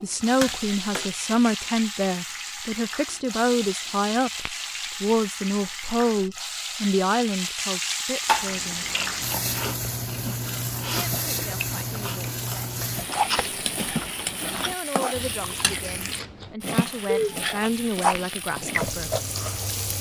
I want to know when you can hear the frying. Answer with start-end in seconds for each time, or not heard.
0.0-19.9.